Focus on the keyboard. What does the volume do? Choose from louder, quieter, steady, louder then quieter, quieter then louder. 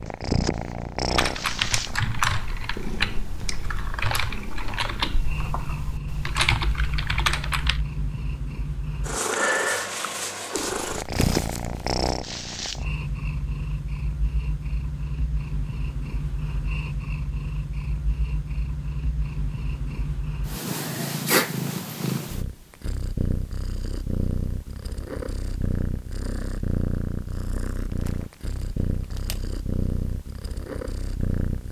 quieter then louder.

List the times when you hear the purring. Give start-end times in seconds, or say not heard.
0.0-31.6.